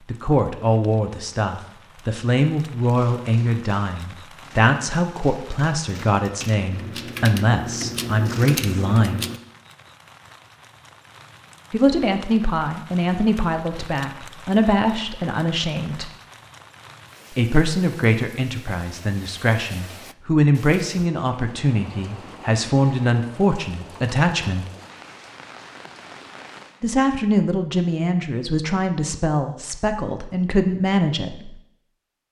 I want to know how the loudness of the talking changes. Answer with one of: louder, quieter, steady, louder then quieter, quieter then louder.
steady.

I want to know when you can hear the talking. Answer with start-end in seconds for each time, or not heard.
0.1-9.2, 11.7-16.1, 17.3-24.6, 26.8-31.6.